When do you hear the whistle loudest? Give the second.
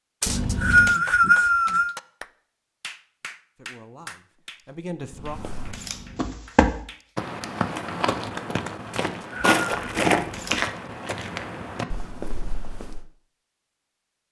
1 s.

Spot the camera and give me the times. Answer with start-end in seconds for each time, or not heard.
0.2-1.0, 5.1-6.4, 9.7-10.7.